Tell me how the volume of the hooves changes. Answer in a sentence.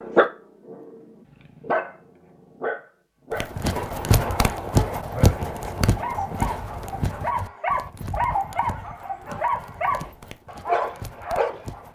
The volume of the hooves goes down.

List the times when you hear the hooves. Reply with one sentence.
You can hear the hooves from 3.3 to 11.8 s.